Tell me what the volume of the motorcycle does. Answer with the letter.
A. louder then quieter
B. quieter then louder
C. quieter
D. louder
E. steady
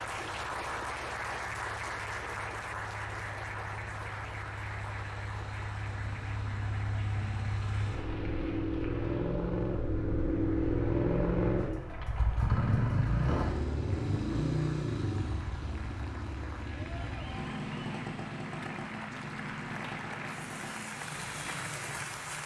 A.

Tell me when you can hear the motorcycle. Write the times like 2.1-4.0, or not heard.
0.0-22.4.